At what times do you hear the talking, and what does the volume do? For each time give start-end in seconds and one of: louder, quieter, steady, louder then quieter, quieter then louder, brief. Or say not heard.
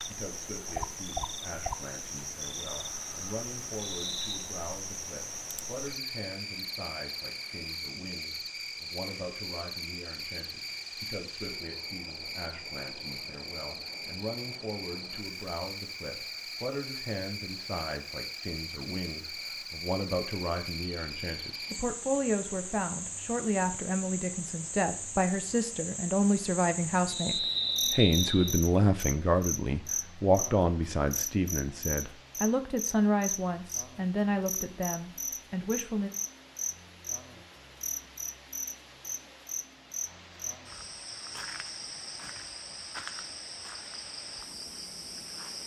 0.0-36.1 louder.